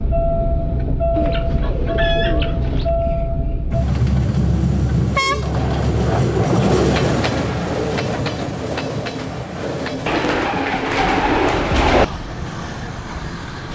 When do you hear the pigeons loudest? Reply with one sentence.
The loudest moment of the pigeons is at 12 seconds.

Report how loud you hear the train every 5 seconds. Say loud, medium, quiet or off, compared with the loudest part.
loud, loud, medium.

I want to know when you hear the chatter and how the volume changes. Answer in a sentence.
You can't hear the chatter here.